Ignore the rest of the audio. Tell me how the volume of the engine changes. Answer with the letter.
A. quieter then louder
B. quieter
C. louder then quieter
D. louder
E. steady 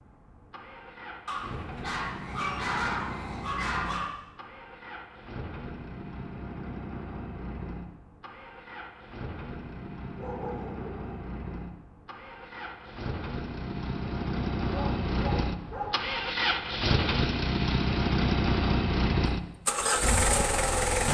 D.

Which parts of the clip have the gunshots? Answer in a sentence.
You can't hear the gunshots here.